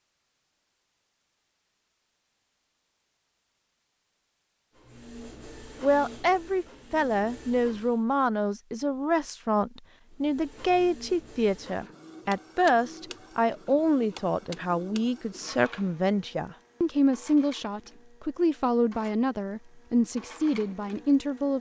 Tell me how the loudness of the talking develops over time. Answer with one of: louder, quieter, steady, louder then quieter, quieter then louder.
steady.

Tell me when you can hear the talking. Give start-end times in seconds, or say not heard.
5.8-21.5.